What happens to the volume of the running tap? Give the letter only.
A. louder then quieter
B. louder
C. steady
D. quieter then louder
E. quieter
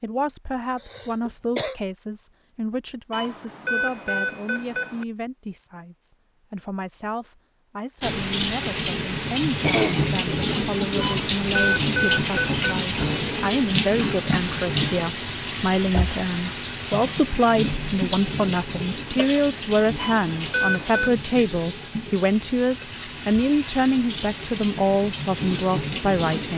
E.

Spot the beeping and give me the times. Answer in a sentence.
You can hear the beeping from 3.1 to 5.0 s, from 11.0 to 12.6 s and from 19.9 to 21.1 s.